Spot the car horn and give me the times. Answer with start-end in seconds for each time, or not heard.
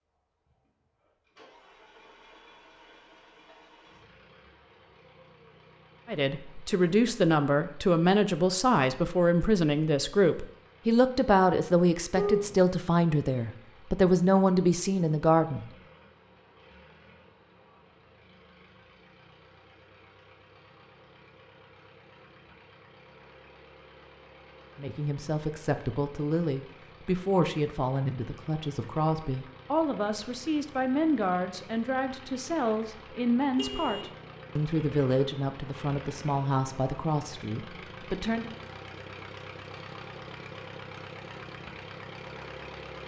12.2-12.6, 33.5-34.1.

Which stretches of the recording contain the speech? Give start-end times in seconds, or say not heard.
6.0-15.7, 24.8-38.5.